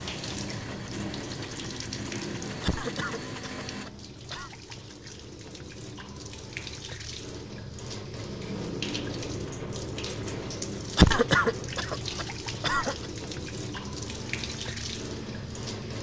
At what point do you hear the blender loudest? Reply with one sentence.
The loudest moment of the blender is at 3 seconds.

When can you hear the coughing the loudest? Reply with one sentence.
The volume of the coughing peaks at 11 seconds.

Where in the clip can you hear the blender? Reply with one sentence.
The blender can be heard from 0.0 to 3.9 s and from 14.0 to 15.9 s.